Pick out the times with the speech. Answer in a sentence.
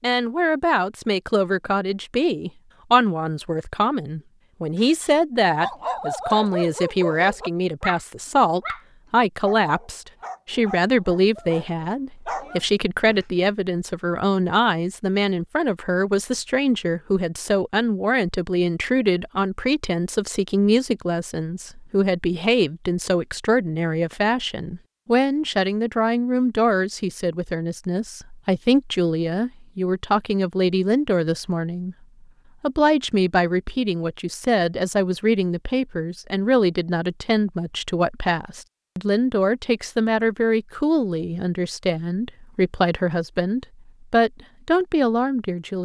The speech can be heard from 0.0 to 31.9 s and from 32.6 to 45.7 s.